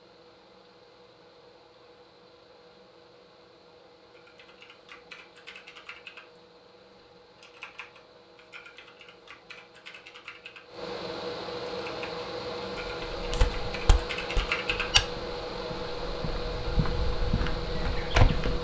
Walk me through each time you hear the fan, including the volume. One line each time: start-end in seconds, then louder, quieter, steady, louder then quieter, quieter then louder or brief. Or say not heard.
0.0-18.5 louder.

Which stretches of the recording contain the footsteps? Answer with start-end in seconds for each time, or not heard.
13.0-18.5.